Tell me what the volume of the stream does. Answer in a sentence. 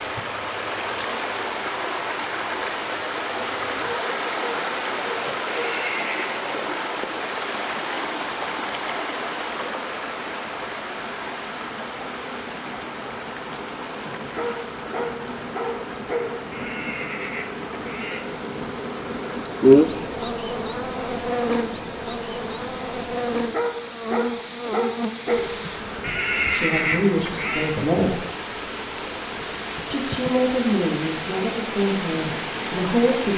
The volume of the stream goes down, then up.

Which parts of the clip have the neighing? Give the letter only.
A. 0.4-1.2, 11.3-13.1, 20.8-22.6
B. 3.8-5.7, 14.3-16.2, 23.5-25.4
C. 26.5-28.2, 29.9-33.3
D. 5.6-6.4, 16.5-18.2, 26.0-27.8
D.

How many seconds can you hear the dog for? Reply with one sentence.
You can hear the dog for 6 seconds altogether.